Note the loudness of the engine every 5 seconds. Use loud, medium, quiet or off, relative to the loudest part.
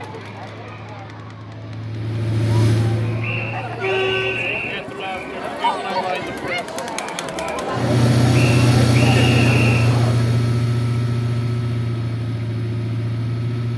medium, loud, medium.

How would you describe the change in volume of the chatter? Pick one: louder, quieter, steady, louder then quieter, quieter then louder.
louder.